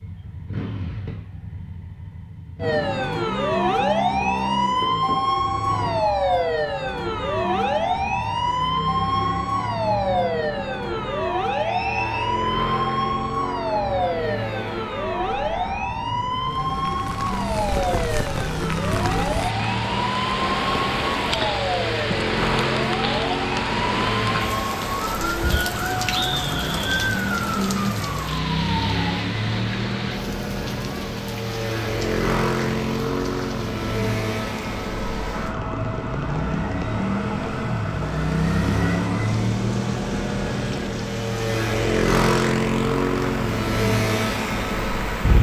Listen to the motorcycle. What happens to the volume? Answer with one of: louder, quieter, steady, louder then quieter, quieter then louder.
louder.